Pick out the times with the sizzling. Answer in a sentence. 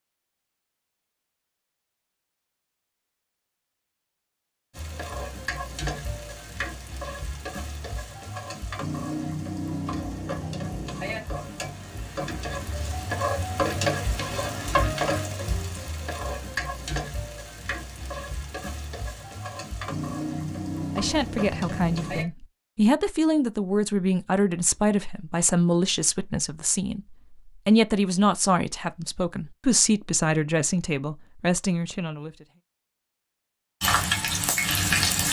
You can hear the sizzling from 4.7 to 22.2 s and from 33.8 to 35.2 s.